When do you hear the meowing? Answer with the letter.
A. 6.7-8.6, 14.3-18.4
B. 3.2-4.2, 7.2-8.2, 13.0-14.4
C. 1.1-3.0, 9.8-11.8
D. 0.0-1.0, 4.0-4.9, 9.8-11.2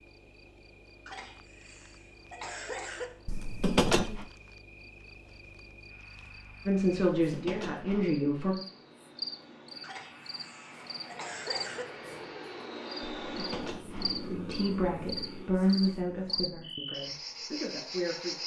B.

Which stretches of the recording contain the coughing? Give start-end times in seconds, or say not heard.
1.1-3.0, 9.8-11.8.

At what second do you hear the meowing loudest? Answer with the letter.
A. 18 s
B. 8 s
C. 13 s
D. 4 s
D.